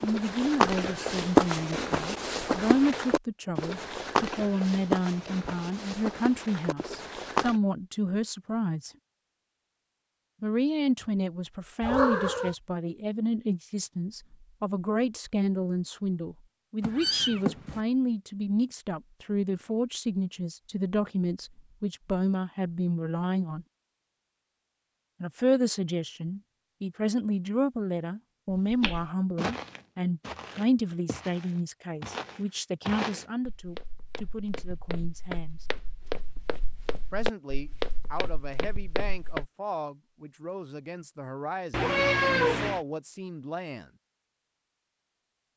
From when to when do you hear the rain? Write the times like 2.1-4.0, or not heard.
not heard.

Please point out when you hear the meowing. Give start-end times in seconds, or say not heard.
11.8-12.6, 16.8-17.8, 41.7-42.8.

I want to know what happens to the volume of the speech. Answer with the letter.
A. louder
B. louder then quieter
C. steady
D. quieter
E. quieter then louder
D.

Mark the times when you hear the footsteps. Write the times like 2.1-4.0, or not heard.
0.0-7.6, 28.5-39.5.